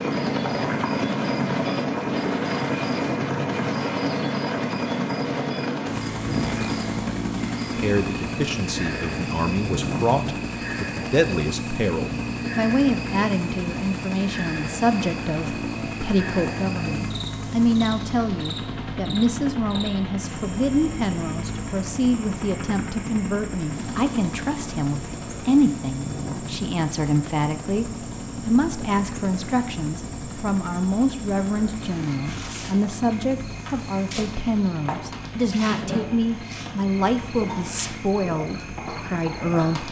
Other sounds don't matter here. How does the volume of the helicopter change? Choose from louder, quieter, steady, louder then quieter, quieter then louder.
quieter.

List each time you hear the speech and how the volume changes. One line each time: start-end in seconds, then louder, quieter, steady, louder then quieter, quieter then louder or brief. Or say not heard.
7.7-39.8 steady.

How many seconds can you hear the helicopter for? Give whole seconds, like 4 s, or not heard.
40 s.